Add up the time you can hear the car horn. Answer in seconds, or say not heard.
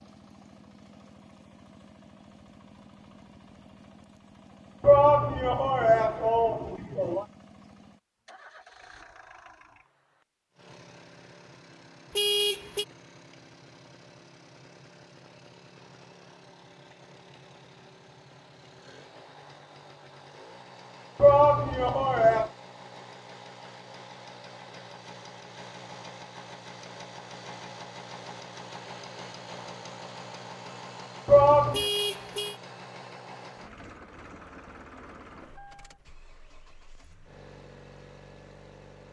2 s.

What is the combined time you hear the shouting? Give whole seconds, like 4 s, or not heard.
4 s.